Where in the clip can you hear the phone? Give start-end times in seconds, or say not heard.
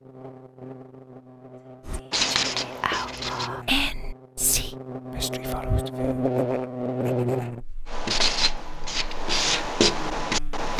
not heard.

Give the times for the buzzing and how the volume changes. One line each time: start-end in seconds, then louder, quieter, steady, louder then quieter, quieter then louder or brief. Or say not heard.
0.0-10.7 louder then quieter.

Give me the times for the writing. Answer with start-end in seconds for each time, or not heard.
1.9-3.5, 7.8-10.7.